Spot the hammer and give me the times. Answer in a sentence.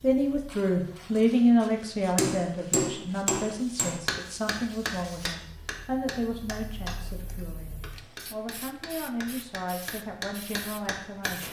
You can hear the hammer from 2.1 to 11.3 s.